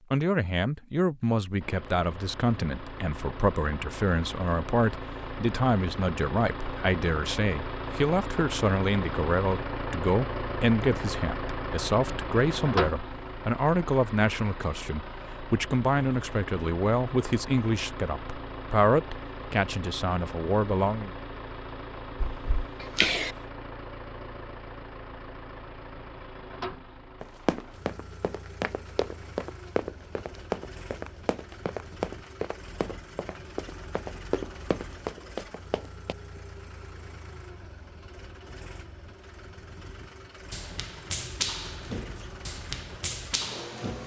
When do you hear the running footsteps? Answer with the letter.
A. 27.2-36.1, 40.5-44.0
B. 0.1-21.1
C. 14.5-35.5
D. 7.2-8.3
A.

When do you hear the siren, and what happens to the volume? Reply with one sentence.
You can't hear the siren here.